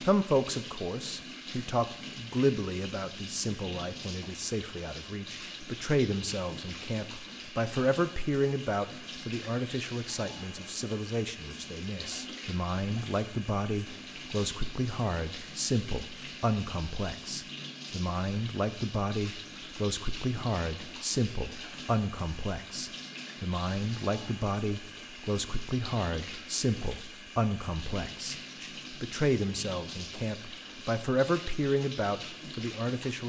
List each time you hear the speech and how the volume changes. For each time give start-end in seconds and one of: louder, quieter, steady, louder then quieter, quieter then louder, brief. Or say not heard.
0.0-33.2 steady.